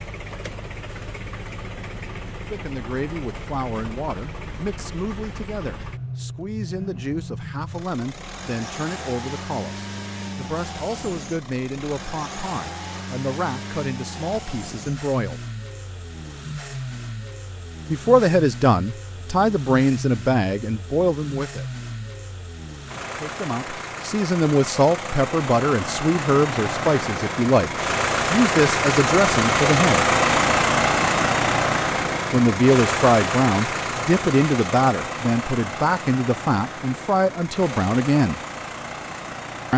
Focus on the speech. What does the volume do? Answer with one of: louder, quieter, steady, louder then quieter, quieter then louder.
louder.